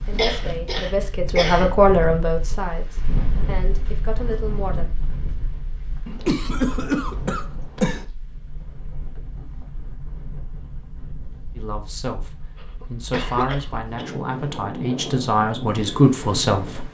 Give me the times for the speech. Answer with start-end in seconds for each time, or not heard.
0.0-4.9, 11.6-16.8.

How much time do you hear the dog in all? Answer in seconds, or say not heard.
not heard.